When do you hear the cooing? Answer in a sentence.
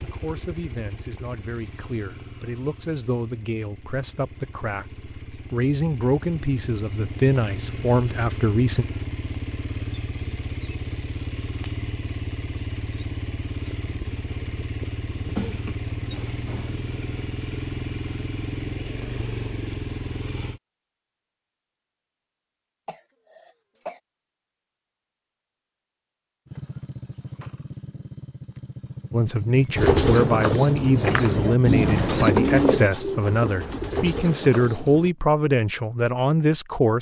The cooing can be heard from 29.8 to 35.1 s.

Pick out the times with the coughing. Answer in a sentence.
The coughing can be heard from 15.2 to 16.9 s and from 22.9 to 24.0 s.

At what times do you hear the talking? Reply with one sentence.
The talking can be heard from 0.0 to 8.8 s and from 29.1 to 36.9 s.